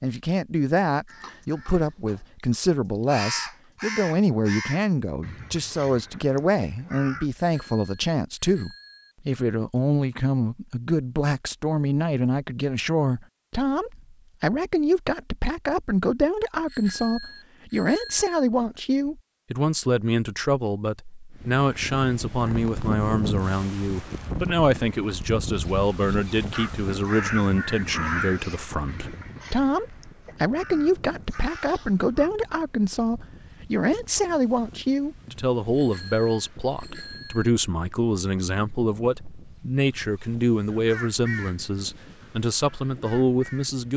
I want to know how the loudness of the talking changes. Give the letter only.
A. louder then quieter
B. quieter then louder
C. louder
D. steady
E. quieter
D.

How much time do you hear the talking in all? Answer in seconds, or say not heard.
44 s.